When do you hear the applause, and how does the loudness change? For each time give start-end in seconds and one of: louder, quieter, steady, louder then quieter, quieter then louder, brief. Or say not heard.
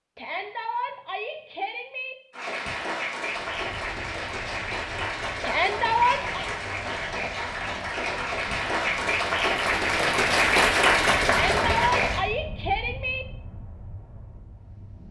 2.3-12.2 louder.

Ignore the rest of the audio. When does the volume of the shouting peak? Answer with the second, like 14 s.
6 s.